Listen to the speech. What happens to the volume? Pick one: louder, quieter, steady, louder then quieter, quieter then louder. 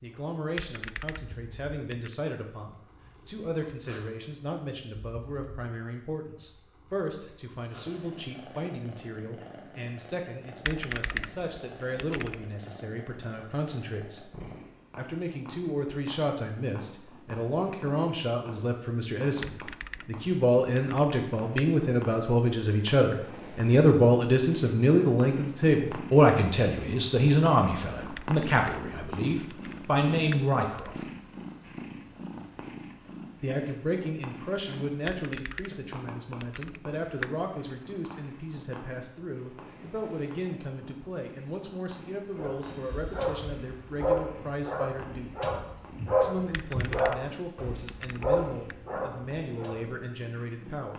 louder then quieter.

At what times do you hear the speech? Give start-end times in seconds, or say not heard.
0.0-14.3, 14.9-31.1, 33.4-45.4, 46.1-50.9.